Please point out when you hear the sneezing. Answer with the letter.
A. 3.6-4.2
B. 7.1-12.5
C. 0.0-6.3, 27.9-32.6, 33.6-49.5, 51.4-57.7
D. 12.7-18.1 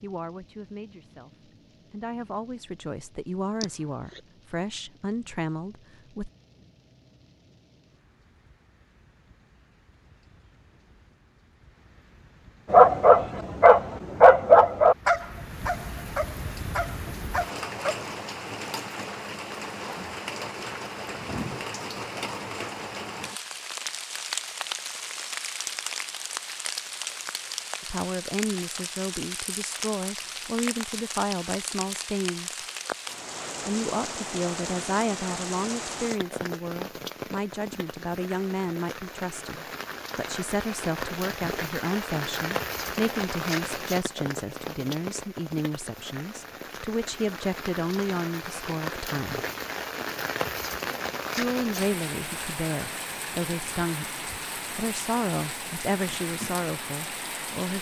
A.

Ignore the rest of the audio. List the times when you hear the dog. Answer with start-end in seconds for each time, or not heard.
12.7-18.1.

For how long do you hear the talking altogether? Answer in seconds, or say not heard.
33 s.